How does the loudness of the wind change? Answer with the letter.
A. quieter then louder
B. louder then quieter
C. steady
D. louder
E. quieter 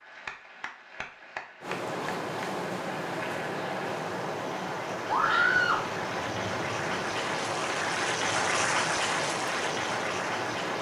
C.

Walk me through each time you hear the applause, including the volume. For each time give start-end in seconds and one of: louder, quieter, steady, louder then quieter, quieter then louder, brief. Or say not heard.
0.0-10.7 louder.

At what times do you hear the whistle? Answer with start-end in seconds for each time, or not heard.
not heard.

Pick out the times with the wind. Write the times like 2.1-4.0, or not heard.
1.6-10.7.